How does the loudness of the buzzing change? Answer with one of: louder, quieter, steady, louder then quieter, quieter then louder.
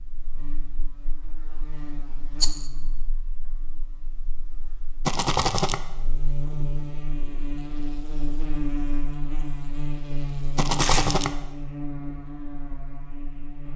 quieter then louder.